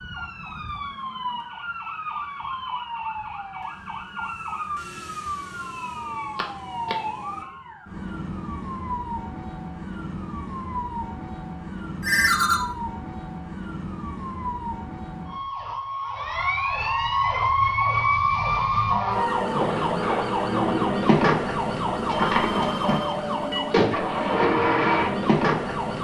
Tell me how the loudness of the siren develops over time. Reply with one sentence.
The volume of the siren goes up.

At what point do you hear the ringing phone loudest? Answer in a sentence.
The volume of the ringing phone peaks at 12 seconds.